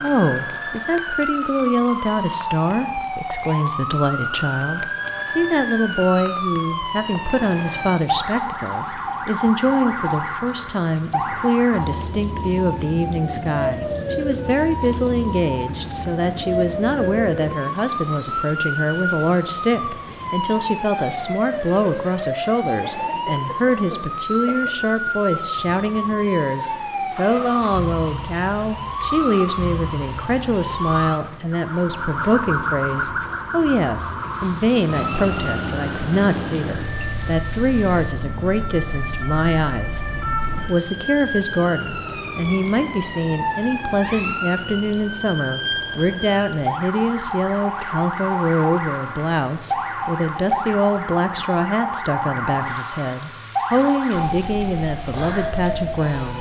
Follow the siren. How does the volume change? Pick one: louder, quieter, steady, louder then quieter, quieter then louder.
steady.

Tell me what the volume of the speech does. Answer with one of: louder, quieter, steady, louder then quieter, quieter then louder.
steady.